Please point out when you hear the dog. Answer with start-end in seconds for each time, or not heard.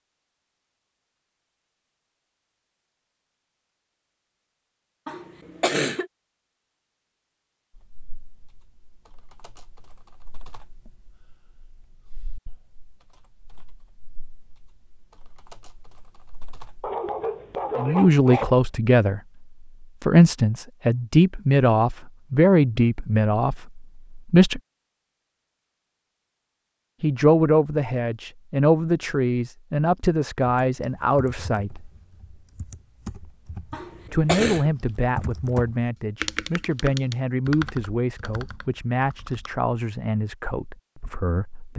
16.8-18.6.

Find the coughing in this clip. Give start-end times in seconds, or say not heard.
5.0-6.1, 33.7-34.7.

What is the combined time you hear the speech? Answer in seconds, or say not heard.
19 s.